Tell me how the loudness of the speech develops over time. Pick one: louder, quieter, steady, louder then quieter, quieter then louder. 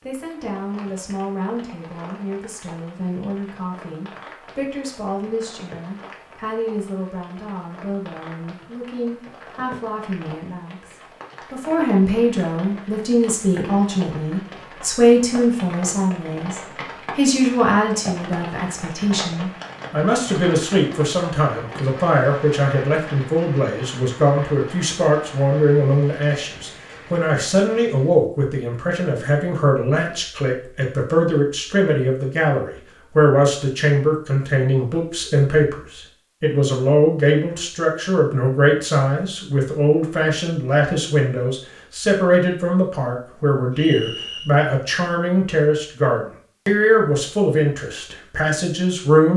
louder.